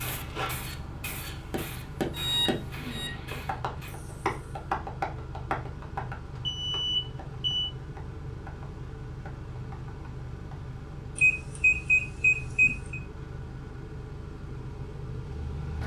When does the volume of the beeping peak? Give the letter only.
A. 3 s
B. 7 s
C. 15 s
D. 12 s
D.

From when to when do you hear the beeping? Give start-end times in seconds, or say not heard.
2.1-3.1, 6.5-7.7, 11.2-13.0.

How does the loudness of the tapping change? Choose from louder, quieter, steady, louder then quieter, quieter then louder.
quieter.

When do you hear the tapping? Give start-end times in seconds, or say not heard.
1.5-10.7.